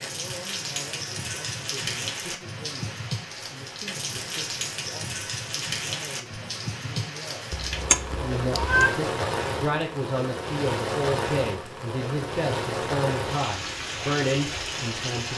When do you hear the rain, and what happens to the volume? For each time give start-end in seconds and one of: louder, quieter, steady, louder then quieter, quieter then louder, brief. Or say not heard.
0.0-15.3 steady.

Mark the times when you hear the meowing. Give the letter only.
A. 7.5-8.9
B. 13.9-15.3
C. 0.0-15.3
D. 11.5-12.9
A.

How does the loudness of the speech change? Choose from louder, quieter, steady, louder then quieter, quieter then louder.
louder.